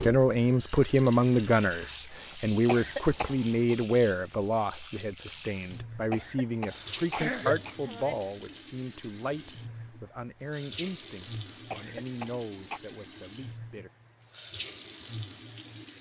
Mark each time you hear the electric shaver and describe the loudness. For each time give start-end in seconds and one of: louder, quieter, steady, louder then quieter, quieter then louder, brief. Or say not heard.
not heard.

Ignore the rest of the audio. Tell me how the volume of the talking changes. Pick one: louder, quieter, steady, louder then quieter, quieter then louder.
quieter.